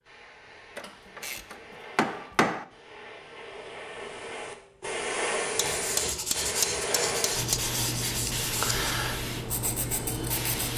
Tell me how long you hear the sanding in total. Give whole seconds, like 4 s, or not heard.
5 s.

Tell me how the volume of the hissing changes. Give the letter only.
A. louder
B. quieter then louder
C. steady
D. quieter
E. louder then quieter
A.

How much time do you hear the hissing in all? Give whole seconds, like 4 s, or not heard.
11 s.